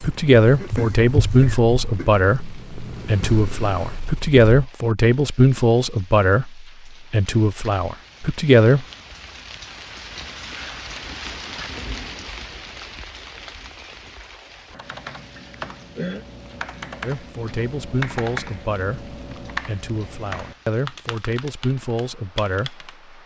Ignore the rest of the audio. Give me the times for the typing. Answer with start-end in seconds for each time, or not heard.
14.7-22.9.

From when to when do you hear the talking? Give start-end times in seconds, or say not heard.
0.0-8.8, 17.0-22.9.